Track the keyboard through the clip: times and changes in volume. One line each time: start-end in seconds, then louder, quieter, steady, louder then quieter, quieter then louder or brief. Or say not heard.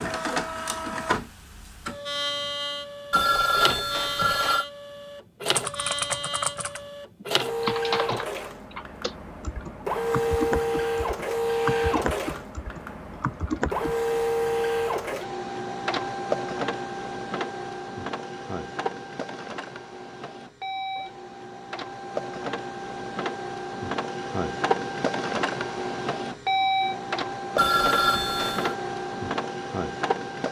5.5-13.9 steady.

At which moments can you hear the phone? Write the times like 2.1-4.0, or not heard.
3.1-4.7, 27.6-28.8.